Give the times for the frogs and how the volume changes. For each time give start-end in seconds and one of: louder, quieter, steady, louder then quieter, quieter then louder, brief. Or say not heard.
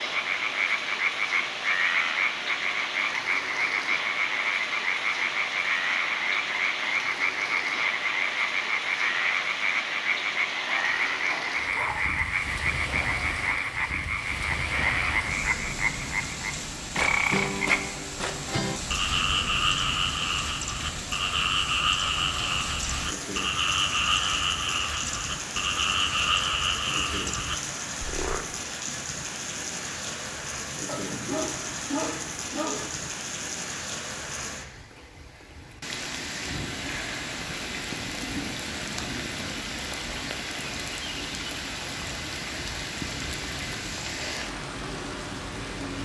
0.0-28.4 steady.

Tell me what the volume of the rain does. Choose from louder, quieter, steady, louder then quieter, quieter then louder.
steady.